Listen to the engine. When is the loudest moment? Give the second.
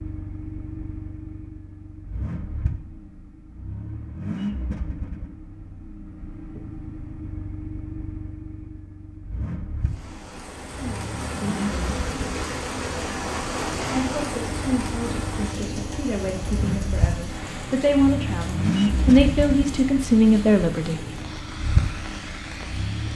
19 s.